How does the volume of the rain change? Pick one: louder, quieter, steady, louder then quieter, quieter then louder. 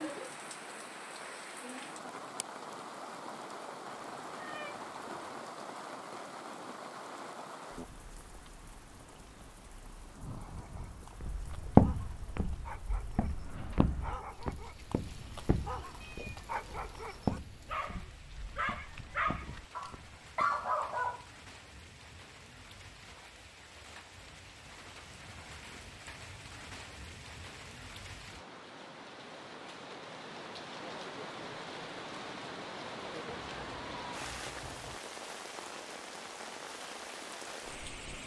quieter then louder.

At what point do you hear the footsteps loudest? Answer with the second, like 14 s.
12 s.